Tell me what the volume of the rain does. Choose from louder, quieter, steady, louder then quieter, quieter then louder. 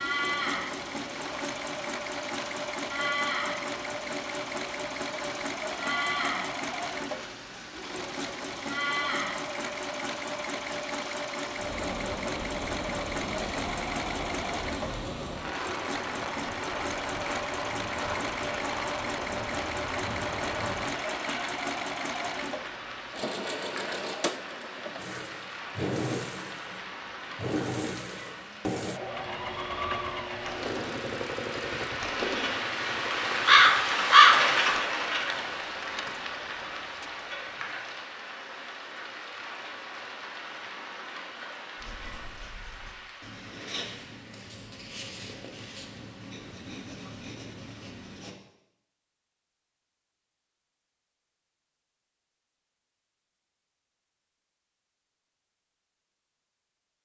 louder then quieter.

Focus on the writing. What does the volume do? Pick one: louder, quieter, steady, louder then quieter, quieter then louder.
louder.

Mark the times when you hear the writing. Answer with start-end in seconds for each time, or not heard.
41.8-48.4.